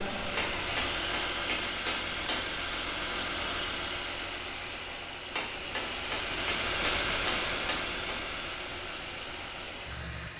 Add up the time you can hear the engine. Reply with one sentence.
The engine can be heard for 10 seconds in total.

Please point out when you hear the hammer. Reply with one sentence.
You can hear the hammer from 0.3 to 2.6 s and from 5.3 to 8.2 s.